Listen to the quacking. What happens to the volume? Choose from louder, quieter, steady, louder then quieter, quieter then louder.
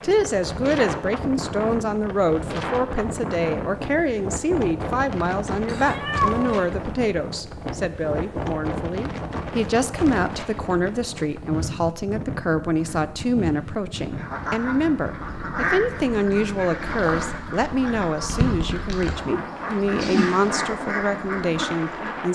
steady.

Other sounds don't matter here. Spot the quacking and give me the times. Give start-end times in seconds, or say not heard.
14.1-22.3.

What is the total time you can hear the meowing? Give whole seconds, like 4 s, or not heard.
2 s.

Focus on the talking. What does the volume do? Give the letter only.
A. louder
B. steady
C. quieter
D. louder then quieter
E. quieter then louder
B.